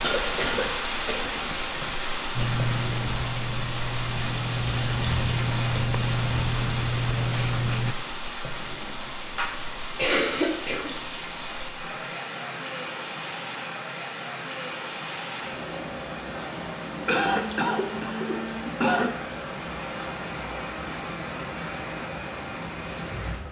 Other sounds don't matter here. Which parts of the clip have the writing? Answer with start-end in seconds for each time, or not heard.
2.4-8.0.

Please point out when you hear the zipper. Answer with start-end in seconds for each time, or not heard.
not heard.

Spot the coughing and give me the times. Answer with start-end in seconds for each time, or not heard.
0.0-2.0, 9.3-10.9, 17.1-19.1.